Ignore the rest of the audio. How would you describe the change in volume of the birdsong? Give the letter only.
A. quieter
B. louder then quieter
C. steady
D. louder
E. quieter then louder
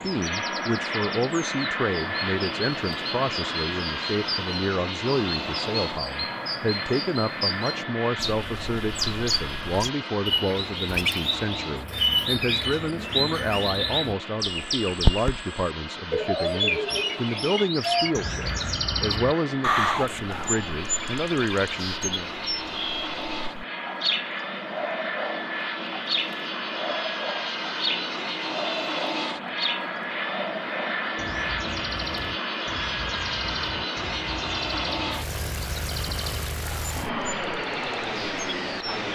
B.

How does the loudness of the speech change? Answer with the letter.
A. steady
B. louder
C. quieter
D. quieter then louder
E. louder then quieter
A.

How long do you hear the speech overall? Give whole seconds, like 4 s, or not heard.
22 s.